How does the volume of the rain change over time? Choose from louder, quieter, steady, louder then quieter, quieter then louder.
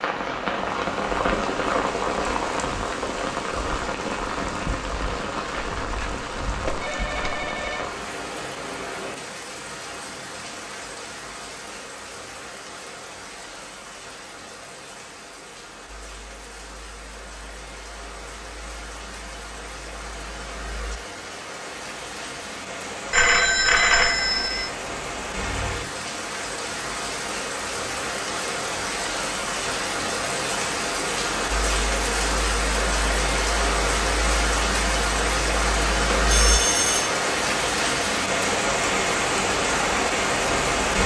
quieter then louder.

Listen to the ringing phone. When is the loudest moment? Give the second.
24 s.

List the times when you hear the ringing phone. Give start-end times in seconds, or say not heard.
5.5-7.9, 23.1-24.7, 36.0-37.1.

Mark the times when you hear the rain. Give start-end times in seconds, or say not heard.
0.0-41.0.